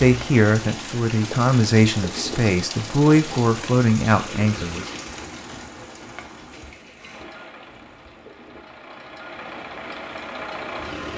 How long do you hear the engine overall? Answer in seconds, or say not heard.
4 s.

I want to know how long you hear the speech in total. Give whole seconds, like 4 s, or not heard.
5 s.